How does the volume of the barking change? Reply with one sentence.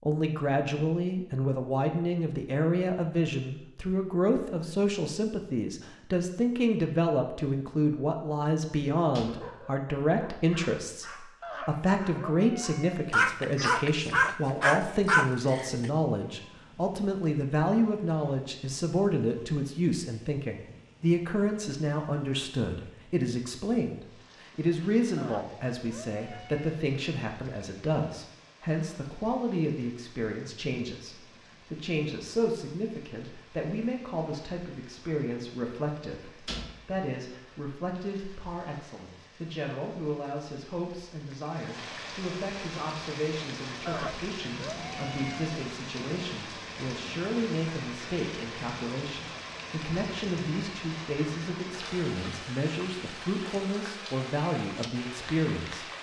The loudness of the barking goes up.